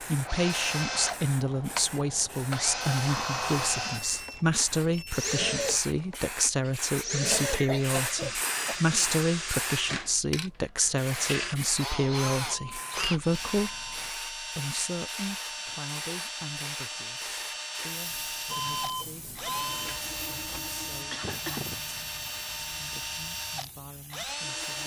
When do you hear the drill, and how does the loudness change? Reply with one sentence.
The drill can be heard from 0.0 to 24.8 s, at a steady volume.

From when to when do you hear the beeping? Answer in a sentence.
The beeping can be heard from 3.0 to 5.3 s, from 12.4 to 14.1 s and from 18.4 to 20.0 s.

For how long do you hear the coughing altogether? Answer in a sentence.
You can hear the coughing for 3 seconds altogether.